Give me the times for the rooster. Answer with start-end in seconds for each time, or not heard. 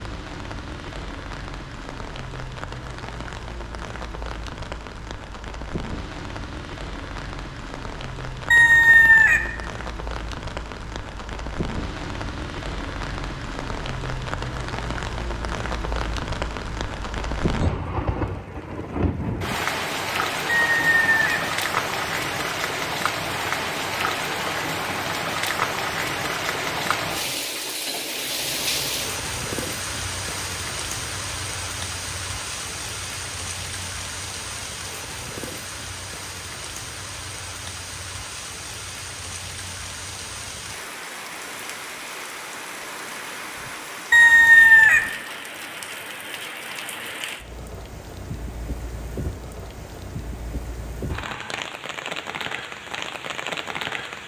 8.5-9.4, 20.4-21.4, 44.1-45.0.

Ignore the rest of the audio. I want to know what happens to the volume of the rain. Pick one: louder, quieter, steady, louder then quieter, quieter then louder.
louder then quieter.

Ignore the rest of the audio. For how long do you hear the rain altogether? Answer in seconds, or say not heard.
54 s.